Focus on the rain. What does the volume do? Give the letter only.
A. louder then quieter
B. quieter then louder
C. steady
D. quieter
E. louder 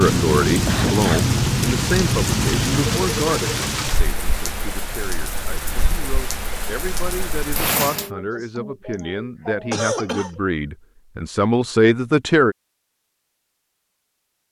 D.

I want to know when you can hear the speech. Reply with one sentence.
The speech can be heard from 0.0 to 12.6 s.